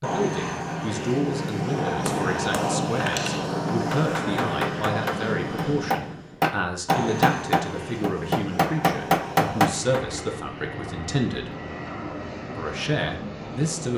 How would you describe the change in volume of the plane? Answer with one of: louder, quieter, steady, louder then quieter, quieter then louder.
quieter.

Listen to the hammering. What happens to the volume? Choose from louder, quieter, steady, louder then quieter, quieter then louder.
louder.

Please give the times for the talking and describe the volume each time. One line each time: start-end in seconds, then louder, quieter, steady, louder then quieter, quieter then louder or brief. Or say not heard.
0.0-11.5 steady
12.6-13.9 brief.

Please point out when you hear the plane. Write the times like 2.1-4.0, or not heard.
0.0-13.9.